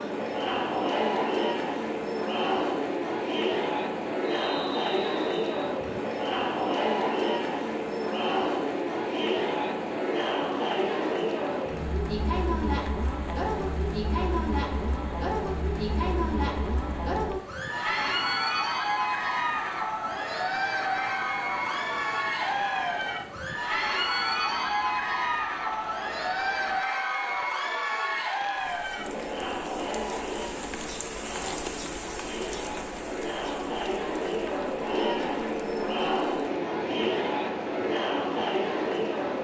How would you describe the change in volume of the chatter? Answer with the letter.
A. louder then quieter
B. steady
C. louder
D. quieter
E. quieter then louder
B.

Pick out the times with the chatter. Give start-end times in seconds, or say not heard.
0.0-39.3.